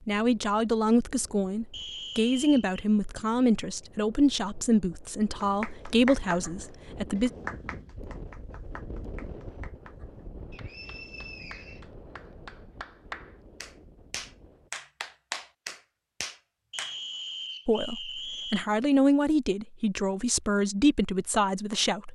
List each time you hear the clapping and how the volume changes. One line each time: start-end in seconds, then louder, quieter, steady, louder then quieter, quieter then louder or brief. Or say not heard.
5.4-16.9 quieter then louder.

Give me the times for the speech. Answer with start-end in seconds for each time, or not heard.
0.1-7.3, 17.6-22.1.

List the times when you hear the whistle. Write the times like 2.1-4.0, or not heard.
1.7-2.8, 10.5-11.8, 16.7-18.7.